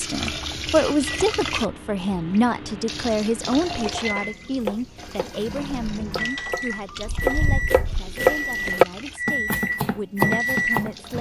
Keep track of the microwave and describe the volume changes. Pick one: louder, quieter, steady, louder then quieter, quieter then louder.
louder.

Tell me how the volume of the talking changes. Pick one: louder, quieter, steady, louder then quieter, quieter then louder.
quieter.